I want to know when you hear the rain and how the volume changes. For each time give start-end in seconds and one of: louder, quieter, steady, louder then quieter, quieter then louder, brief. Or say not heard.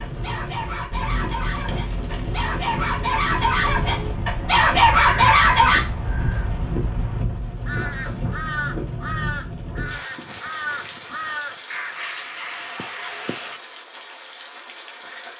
0.0-15.3 quieter.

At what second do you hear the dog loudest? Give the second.
5 s.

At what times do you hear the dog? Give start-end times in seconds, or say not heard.
0.0-5.8.